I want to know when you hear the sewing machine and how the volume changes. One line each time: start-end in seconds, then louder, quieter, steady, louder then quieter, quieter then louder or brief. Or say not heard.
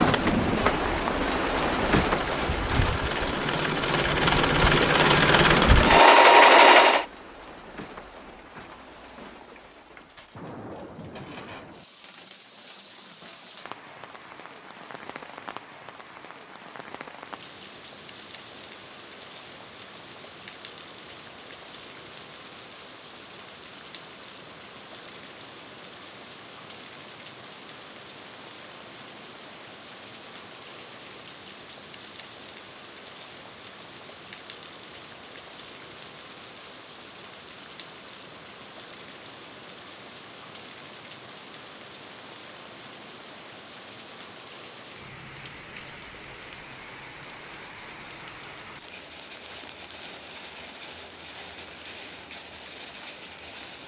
0.0-7.0 louder.